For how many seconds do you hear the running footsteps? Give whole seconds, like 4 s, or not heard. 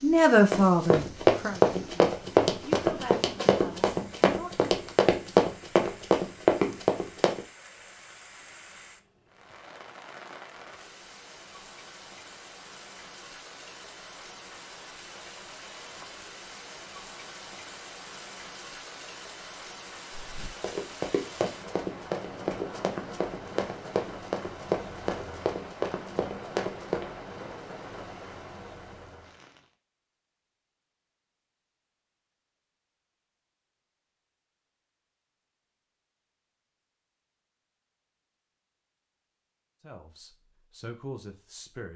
14 s.